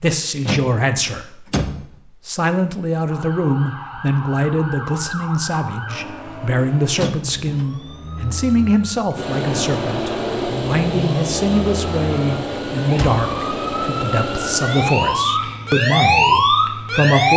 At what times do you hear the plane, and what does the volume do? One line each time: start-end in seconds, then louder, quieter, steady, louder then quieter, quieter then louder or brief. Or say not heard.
9.2-17.1 quieter.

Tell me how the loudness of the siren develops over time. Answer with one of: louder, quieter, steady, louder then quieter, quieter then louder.
louder.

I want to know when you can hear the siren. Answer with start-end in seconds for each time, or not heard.
3.0-17.3.